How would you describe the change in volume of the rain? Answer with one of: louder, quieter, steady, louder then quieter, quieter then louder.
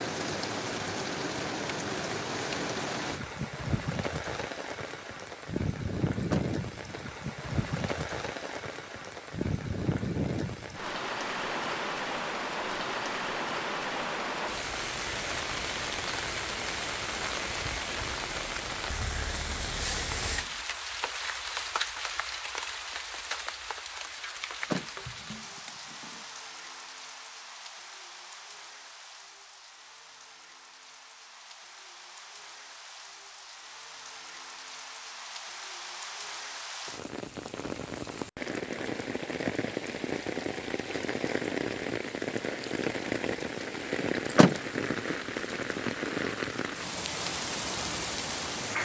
quieter then louder.